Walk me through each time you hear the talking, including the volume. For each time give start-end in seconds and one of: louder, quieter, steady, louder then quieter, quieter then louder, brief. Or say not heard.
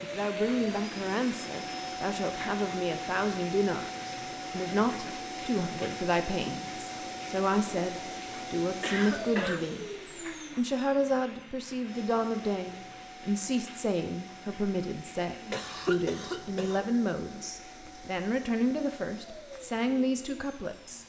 0.0-9.8 steady
10.6-21.0 steady.